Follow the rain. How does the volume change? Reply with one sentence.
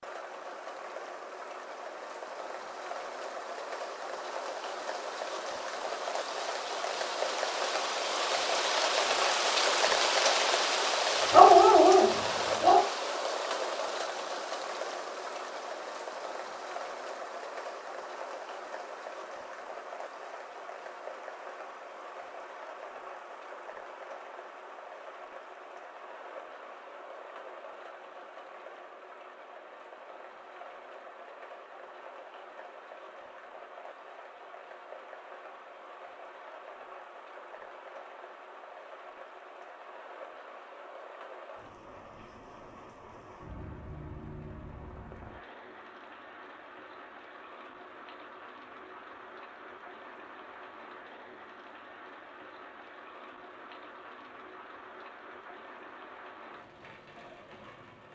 The loudness of the rain goes down.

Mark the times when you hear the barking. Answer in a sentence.
The barking can be heard from 11.3 to 12.8 s.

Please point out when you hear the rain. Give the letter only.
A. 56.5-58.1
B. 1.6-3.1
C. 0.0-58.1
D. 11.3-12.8
C.